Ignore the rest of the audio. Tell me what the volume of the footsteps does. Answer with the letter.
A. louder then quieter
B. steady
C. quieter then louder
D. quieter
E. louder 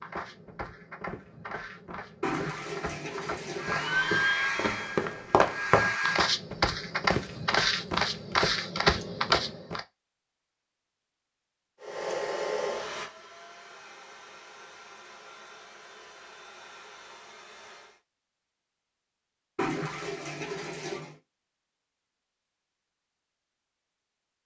E.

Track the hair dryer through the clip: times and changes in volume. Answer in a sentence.
You can hear the hair dryer briefly from 3.5 to 6.3 s; and from 11.8 to 18.0 s, getting quieter.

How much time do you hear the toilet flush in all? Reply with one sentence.
The toilet flush can be heard for 4 seconds in total.